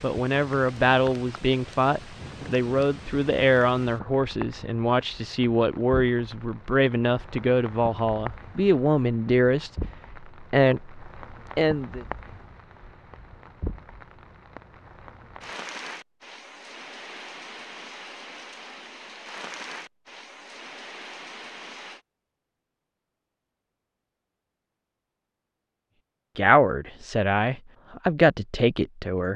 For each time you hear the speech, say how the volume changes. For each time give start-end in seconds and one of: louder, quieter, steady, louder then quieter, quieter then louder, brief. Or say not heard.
0.0-12.1 steady
26.4-29.3 brief.